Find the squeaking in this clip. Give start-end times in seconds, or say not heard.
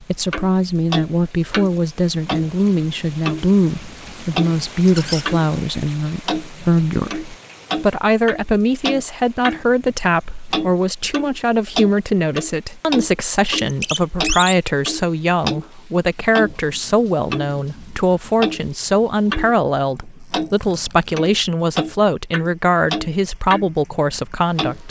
4.8-5.2, 13.5-14.6, 20.2-21.2.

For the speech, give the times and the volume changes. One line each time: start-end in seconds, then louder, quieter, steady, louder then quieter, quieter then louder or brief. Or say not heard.
0.0-24.8 steady.